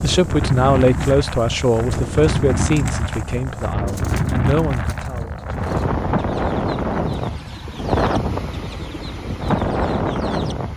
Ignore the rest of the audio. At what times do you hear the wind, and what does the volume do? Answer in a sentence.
You can hear the wind from 0.0 to 10.7 s, at a steady volume.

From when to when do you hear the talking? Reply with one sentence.
You can hear the talking from 0.0 to 5.3 s.